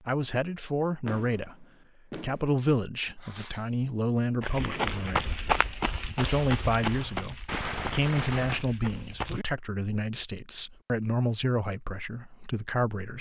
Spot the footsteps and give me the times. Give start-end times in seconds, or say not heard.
4.4-9.4.